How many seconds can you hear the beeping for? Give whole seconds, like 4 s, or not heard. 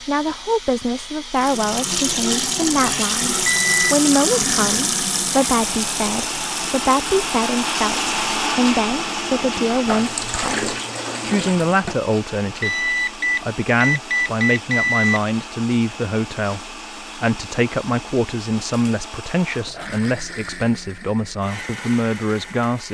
3 s.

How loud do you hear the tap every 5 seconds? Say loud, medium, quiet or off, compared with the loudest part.
loud, medium, medium, off, off.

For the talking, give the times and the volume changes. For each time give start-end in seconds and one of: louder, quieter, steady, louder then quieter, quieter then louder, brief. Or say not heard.
0.0-22.8 steady.